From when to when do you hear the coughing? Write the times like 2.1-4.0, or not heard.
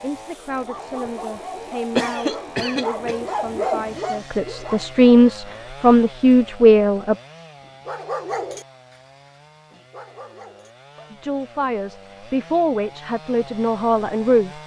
1.9-3.1.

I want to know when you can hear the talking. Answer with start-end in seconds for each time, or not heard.
0.0-7.2, 11.1-14.5.